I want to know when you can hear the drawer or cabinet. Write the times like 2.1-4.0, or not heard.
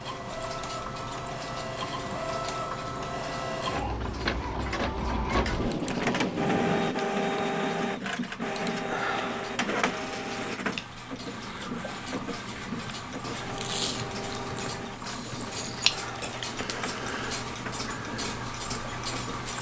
4.7-5.7.